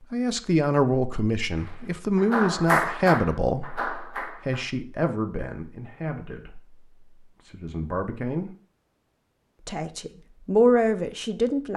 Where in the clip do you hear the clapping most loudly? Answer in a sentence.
The loudest moment of the clapping is at 3 seconds.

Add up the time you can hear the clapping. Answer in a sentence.
The clapping can be heard for 3 seconds in total.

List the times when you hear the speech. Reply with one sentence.
You can hear the speech from 0.1 to 8.5 s and from 9.7 to 11.7 s.